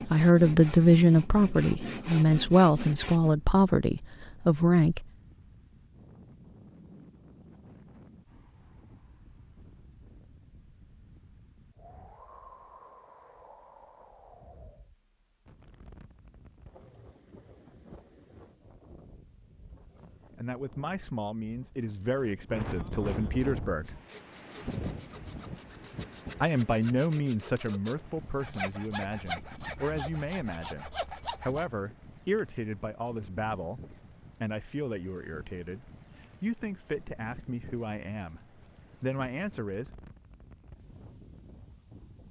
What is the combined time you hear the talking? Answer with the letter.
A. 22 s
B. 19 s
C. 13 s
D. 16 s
A.